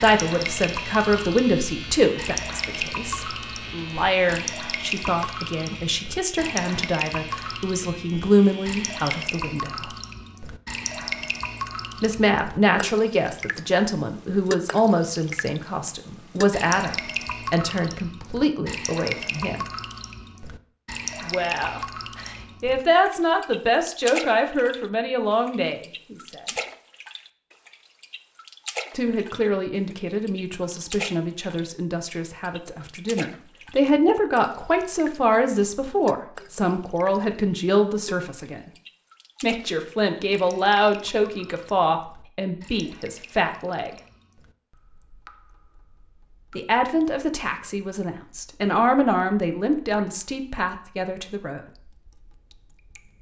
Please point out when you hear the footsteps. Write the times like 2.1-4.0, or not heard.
not heard.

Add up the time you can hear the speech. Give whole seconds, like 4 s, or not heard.
42 s.